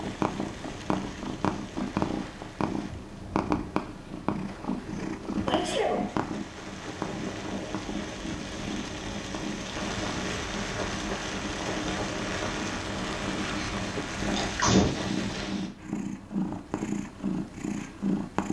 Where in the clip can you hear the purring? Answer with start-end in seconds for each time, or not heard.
0.0-18.4.